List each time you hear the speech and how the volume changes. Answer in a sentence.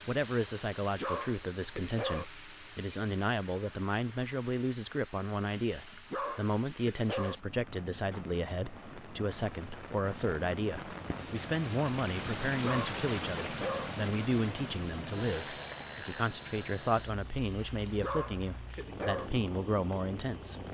The speech can be heard from 0.1 to 20.6 s, at a steady volume.